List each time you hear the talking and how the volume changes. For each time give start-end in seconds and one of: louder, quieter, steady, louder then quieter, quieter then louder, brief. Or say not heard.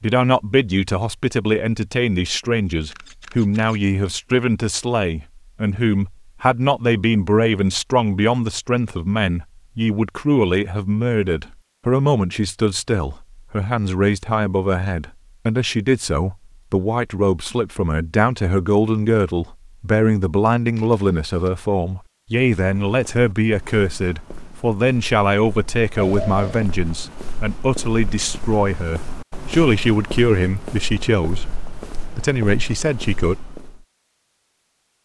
0.0-33.4 steady.